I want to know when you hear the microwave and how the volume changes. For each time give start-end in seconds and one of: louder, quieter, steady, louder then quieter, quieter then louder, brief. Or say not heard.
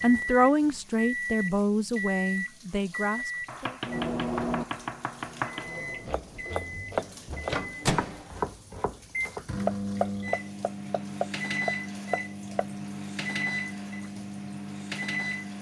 0.0-15.5 steady.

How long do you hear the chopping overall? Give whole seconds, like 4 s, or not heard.
9 s.